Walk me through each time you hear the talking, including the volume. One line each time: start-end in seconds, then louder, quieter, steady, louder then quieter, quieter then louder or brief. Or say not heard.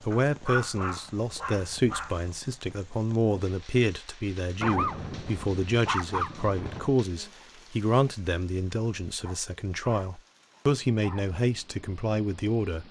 0.0-12.8 steady.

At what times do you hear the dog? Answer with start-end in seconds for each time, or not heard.
0.1-2.3, 4.6-6.9, 9.2-11.2.